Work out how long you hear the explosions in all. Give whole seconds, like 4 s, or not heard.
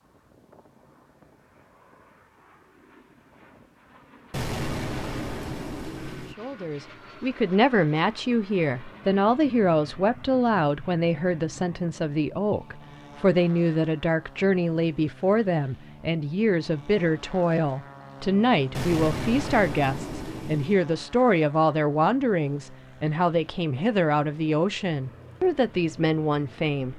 4 s.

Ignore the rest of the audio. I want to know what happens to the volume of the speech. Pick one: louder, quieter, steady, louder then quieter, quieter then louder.
steady.